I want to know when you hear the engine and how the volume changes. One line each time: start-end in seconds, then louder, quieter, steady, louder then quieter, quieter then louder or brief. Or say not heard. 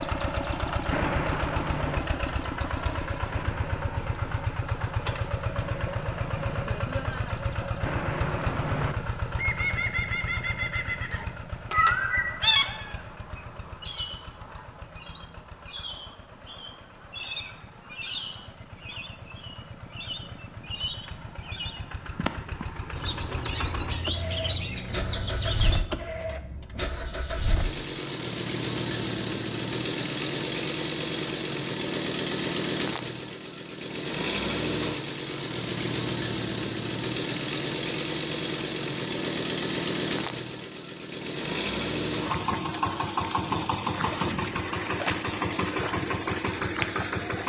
0.0-47.4 quieter then louder.